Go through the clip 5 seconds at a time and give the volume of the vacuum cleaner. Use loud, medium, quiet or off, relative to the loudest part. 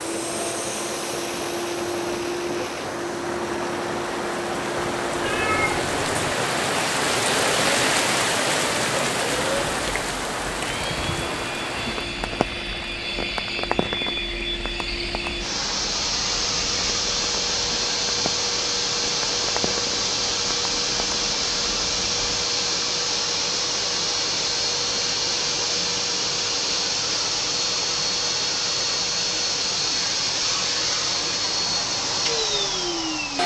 medium, off, medium, loud, loud, loud, loud.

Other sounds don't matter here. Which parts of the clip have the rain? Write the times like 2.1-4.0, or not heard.
0.0-22.4.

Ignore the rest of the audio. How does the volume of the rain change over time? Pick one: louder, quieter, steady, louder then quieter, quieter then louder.
louder then quieter.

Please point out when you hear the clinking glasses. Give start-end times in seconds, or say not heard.
not heard.